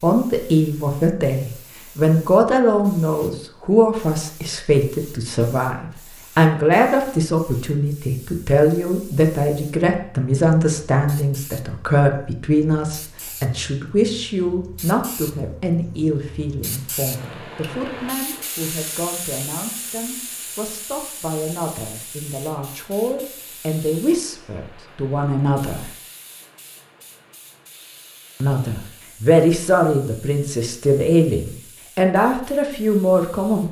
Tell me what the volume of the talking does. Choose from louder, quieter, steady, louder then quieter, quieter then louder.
quieter then louder.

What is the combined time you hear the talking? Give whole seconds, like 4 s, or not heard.
31 s.